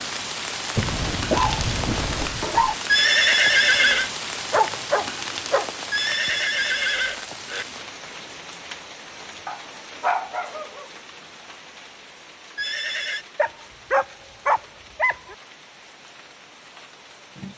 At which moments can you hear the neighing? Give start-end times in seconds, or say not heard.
2.9-4.1, 5.9-7.7, 12.6-13.2.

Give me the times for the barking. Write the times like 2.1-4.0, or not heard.
0.8-2.8, 4.5-5.7, 9.4-10.8, 13.3-15.3.